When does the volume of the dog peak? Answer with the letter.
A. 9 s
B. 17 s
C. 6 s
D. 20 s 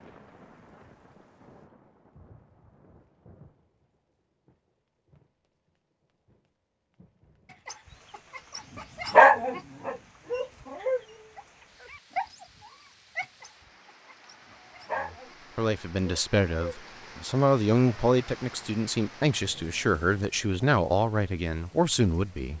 A.